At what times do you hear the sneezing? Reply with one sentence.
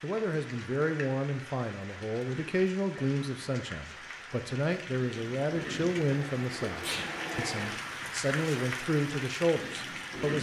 You can hear the sneezing from 6.5 to 7.1 s.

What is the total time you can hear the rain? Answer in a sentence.
The rain can be heard for 10 seconds in total.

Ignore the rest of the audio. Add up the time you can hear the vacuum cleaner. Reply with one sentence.
The vacuum cleaner can be heard for 2 seconds in total.